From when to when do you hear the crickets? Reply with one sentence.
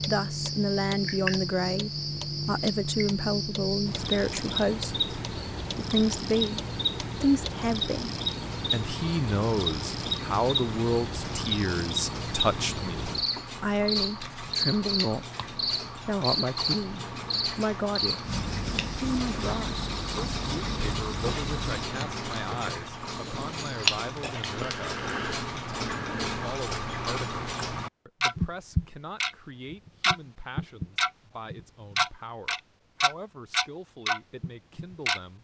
You can hear the crickets from 0.0 to 21.9 s.